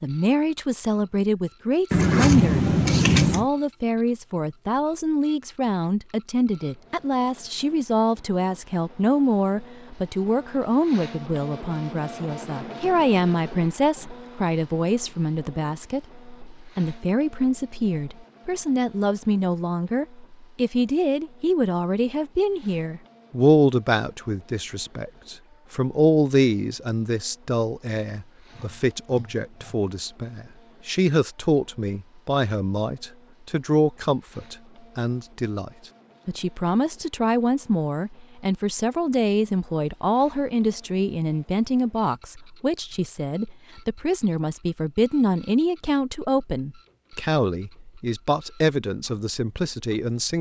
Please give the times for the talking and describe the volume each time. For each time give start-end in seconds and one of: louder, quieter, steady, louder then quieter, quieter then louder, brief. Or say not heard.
0.0-50.3 steady.